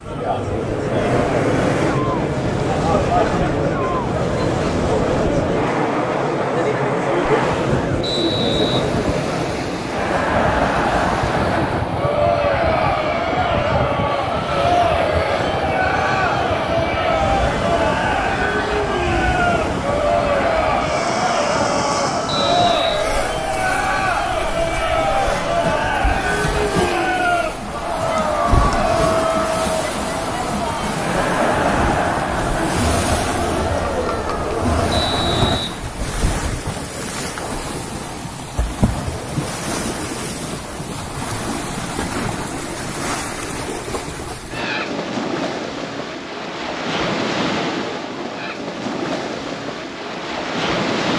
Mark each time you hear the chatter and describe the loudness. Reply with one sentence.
You can hear the chatter from 0.0 to 35.6 s, at a steady volume.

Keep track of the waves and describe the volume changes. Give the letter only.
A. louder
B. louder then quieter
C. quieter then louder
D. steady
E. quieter
D.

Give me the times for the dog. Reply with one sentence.
You can't hear the dog here.